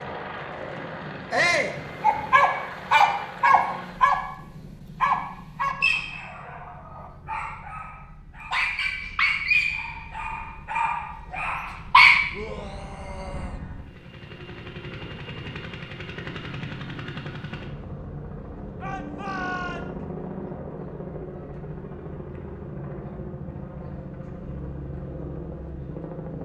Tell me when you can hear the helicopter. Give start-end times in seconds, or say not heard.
0.0-26.3.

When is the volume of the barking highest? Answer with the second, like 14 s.
12 s.